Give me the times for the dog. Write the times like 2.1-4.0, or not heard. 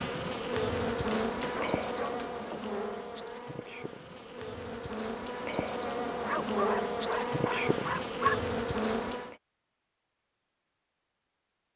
0.9-2.3, 6.1-8.5.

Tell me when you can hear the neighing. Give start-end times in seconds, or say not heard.
not heard.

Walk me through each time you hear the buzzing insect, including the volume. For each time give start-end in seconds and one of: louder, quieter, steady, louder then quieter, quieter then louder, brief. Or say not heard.
0.0-9.3 quieter then louder.